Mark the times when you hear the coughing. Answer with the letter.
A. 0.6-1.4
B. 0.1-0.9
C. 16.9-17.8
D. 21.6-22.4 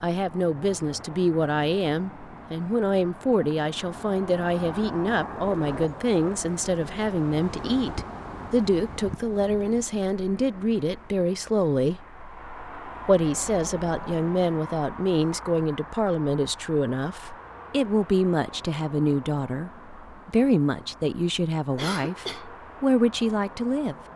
D.